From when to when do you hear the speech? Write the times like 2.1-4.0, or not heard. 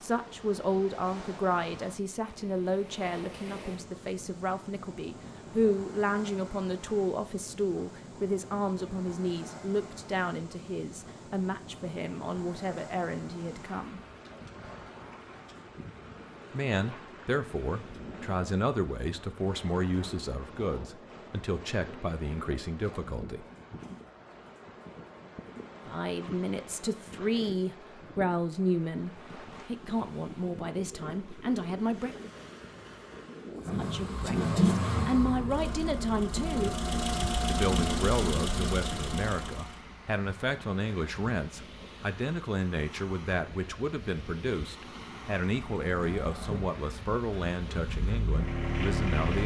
0.0-14.0, 16.5-23.4, 25.9-32.3, 33.7-36.8, 37.5-49.4.